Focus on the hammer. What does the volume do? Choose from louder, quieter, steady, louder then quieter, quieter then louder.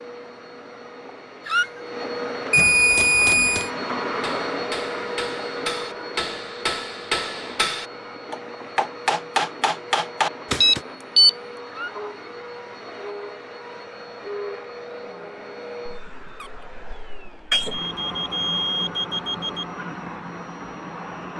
louder.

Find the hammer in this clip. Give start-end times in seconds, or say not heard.
3.0-10.8.